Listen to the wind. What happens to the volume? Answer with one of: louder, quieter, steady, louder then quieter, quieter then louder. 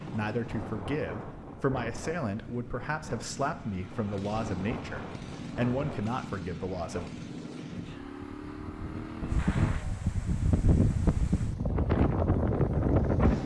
louder.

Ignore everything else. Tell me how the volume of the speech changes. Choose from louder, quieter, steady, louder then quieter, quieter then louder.
steady.